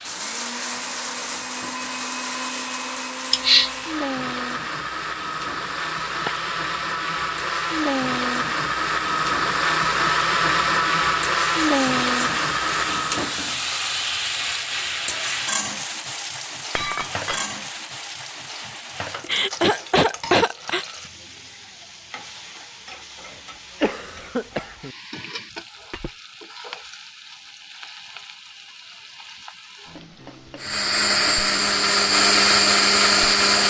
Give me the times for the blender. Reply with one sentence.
The blender can be heard from 0.0 to 13.5 s and from 30.6 to 33.6 s.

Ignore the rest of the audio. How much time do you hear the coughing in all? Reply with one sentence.
You can hear the coughing for 4 seconds altogether.